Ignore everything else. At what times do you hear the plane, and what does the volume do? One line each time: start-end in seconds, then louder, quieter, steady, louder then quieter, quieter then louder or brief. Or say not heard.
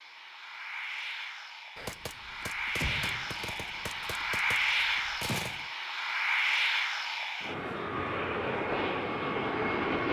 0.0-10.0 louder.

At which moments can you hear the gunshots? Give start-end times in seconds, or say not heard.
1.8-5.7.